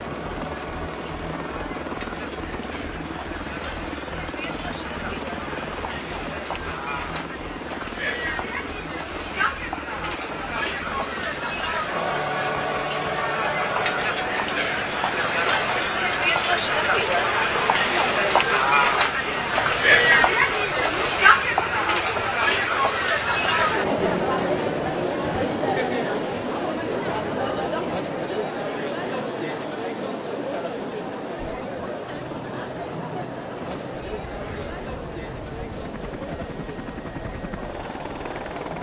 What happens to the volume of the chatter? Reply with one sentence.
The volume of the chatter goes up, then down.